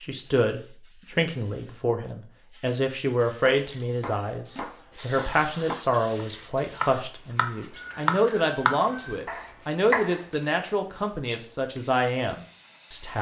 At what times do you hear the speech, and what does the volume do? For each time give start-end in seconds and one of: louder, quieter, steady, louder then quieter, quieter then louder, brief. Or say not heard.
0.0-13.1 steady.